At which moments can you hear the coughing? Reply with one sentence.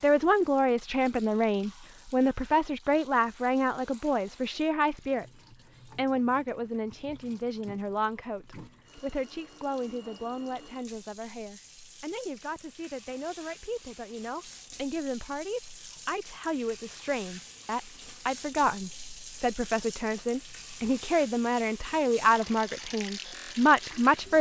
The coughing can't be heard in this clip.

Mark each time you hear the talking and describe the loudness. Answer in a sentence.
You can hear the talking from 0.0 to 24.3 s, getting quieter then louder.